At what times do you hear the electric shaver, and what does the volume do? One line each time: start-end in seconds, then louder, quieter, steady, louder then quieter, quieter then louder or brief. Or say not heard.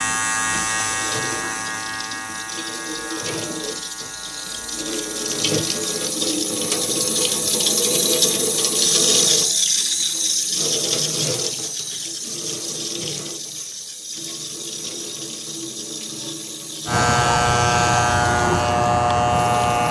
0.0-6.2 quieter
16.9-19.8 brief.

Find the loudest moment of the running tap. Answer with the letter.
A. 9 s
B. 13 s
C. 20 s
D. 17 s
A.